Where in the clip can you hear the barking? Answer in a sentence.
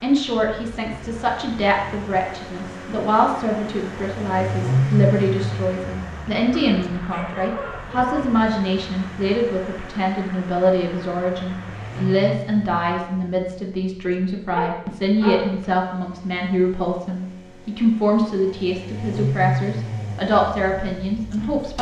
The barking can be heard from 6.5 to 8.4 s and from 14.5 to 15.7 s.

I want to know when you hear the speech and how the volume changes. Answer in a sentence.
You can hear the speech from 0.0 to 21.7 s, at a steady volume.